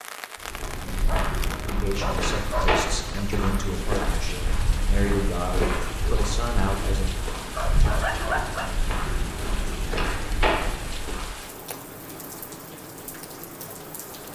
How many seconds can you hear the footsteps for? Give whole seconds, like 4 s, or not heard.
11 s.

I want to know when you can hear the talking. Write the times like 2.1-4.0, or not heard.
1.6-7.0.